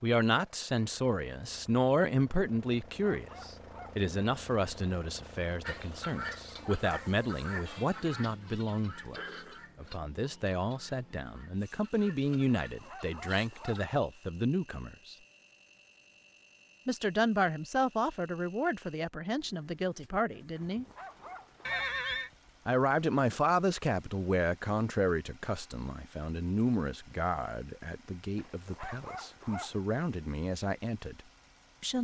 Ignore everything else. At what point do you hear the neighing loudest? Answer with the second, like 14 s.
22 s.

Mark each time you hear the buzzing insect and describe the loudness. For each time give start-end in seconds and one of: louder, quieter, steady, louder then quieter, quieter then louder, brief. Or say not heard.
not heard.